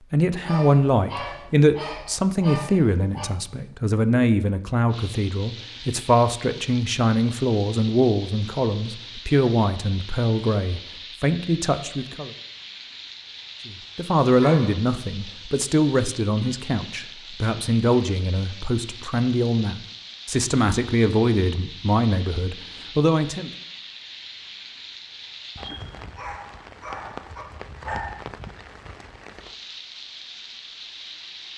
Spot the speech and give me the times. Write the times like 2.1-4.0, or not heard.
0.1-12.3, 13.7-23.5.